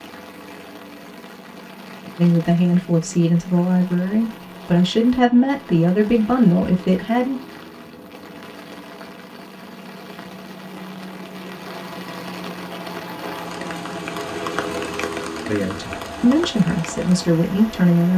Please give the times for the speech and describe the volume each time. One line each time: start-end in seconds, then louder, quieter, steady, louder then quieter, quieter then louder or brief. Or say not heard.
2.1-7.4 steady
15.4-18.1 brief.